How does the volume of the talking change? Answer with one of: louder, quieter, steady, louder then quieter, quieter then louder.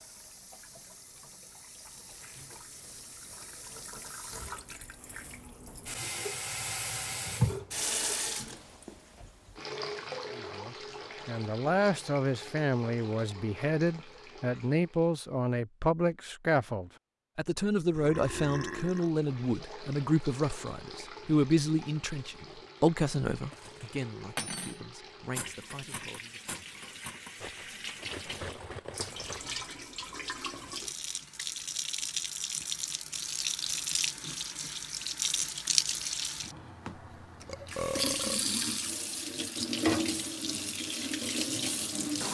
quieter.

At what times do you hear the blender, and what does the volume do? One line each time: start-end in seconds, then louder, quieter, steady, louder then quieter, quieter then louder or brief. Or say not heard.
not heard.